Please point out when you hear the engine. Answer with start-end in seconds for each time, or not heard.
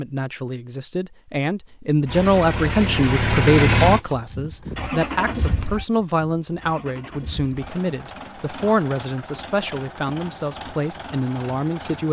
2.0-12.0.